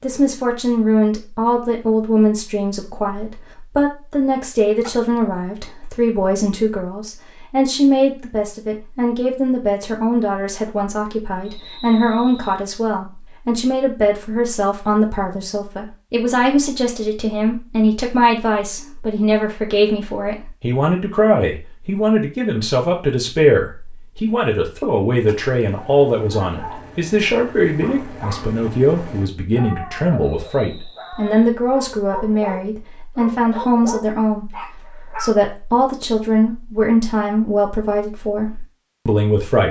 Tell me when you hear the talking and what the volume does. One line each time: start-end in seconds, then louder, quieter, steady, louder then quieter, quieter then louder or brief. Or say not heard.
0.0-39.6 steady.